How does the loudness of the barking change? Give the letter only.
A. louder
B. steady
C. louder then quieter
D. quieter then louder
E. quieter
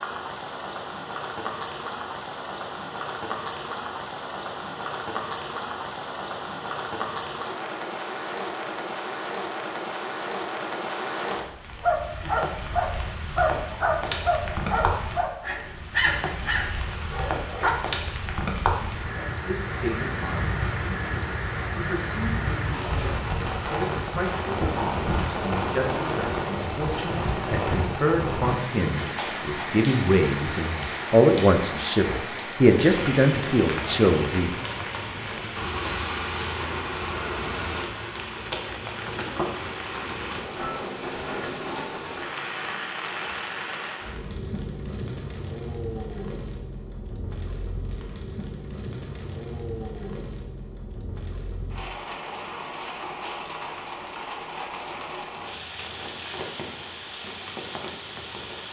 E.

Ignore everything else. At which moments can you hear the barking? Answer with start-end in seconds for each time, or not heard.
11.8-17.8.